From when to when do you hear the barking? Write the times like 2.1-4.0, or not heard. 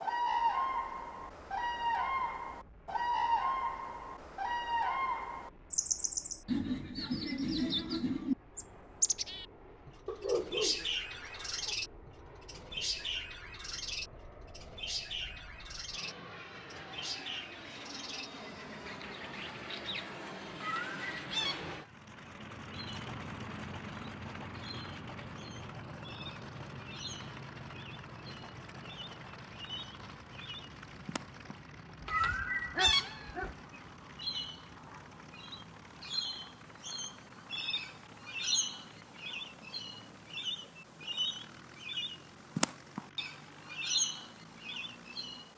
10.1-11.8, 32.0-33.5.